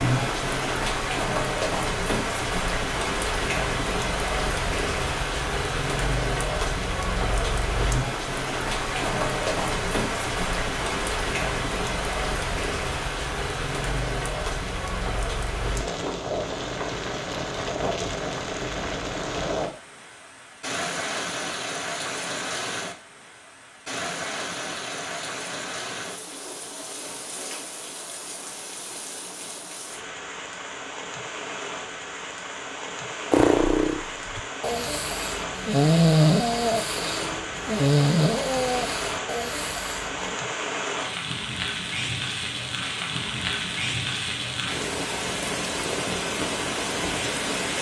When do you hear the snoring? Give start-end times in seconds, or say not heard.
33.3-40.4.